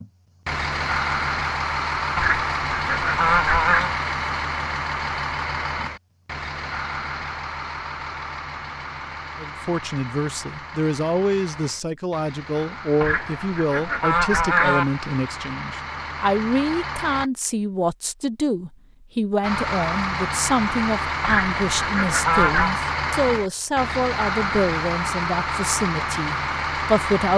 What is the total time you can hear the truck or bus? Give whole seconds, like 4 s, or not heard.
25 s.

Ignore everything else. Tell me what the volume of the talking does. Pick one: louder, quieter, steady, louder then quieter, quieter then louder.
steady.